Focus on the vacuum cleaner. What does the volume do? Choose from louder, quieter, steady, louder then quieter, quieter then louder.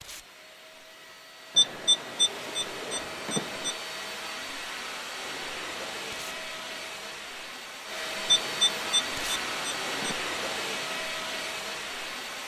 louder.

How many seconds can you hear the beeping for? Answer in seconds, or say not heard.
4 s.